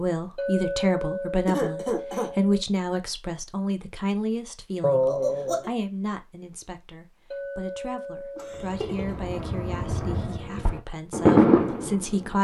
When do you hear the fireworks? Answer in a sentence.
You can hear the fireworks from 8.7 to 12.3 s.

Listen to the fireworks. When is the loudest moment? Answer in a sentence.
The volume of the fireworks peaks at 11 seconds.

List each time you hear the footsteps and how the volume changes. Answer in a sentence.
The footsteps can't be heard in this clip.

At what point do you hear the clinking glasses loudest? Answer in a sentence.
The volume of the clinking glasses peaks at 1 second.